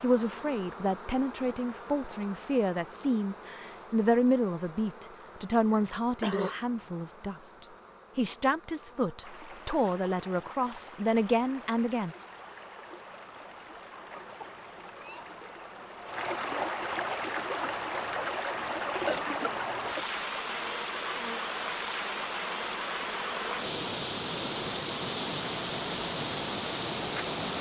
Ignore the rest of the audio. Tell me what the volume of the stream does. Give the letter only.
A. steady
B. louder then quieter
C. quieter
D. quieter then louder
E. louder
E.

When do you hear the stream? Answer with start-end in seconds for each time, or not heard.
9.2-27.5.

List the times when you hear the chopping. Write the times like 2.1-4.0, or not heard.
not heard.